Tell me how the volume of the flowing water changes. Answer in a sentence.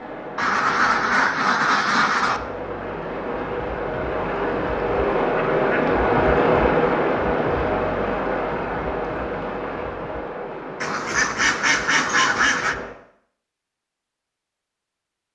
The loudness of the flowing water goes up, then down.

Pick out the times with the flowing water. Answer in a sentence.
The flowing water can be heard from 0.0 to 12.9 s.